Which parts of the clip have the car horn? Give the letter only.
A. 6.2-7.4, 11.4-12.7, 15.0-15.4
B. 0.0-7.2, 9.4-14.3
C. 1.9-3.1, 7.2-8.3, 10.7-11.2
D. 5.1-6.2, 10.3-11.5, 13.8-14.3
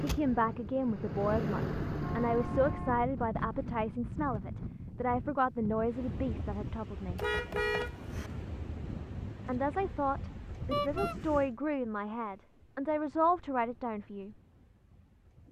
C.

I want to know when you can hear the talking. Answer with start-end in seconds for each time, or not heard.
0.0-7.2, 9.4-14.3.